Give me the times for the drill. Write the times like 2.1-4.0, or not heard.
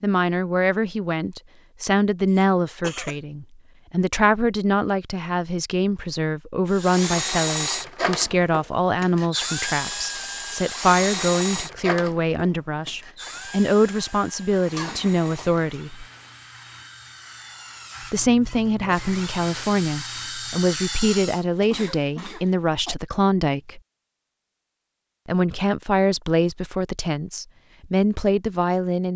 6.7-21.4.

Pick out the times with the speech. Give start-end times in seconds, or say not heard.
0.0-16.1, 18.1-23.8, 25.2-29.1.